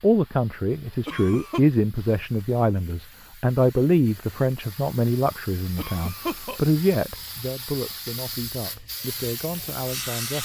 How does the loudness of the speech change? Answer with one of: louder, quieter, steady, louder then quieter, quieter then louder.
quieter.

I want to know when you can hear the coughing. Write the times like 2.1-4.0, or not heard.
1.1-1.6, 5.8-6.6.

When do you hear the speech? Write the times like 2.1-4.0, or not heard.
0.0-10.4.